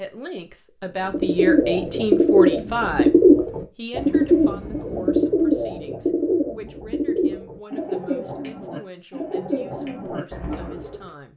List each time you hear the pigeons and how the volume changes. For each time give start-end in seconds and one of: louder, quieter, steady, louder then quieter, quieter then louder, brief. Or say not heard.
1.1-11.1 quieter.